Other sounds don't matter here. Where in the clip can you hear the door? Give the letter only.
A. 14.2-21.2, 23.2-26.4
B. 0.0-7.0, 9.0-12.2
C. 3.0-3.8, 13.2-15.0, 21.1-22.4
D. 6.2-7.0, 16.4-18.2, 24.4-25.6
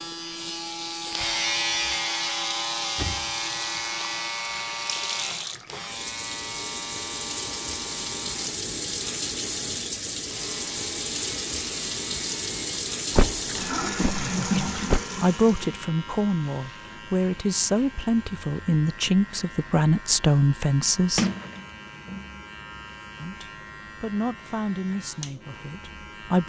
C.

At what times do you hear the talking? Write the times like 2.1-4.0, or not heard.
14.2-21.2, 23.2-26.4.